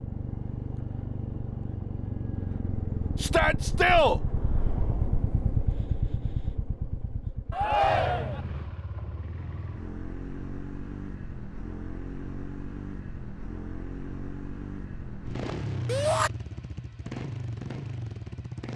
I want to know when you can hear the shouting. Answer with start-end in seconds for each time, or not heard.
3.1-4.2, 7.5-8.4, 15.8-16.3.